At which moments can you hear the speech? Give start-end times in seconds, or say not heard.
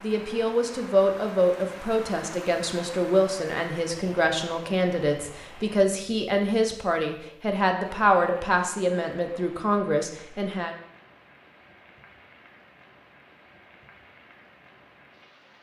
0.0-10.8.